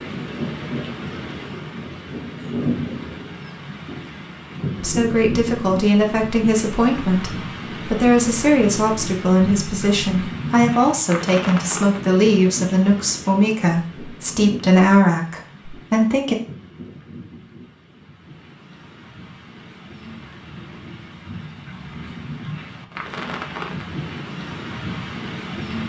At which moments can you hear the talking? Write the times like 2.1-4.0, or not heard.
4.8-16.4.